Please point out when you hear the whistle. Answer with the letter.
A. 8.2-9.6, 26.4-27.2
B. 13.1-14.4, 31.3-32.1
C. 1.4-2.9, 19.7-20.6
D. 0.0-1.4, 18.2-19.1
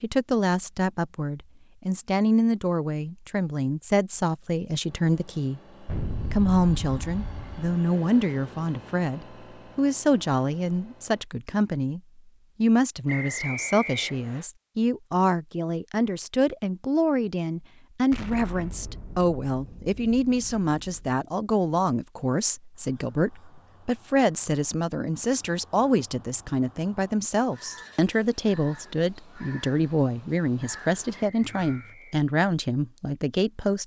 B.